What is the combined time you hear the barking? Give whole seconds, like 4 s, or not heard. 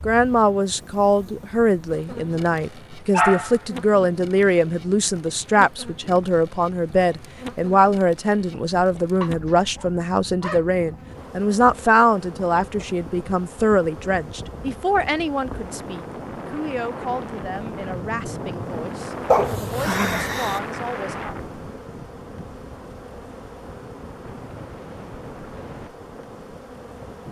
4 s.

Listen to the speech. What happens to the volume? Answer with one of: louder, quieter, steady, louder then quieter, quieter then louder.
quieter.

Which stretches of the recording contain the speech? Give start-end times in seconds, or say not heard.
0.1-21.4.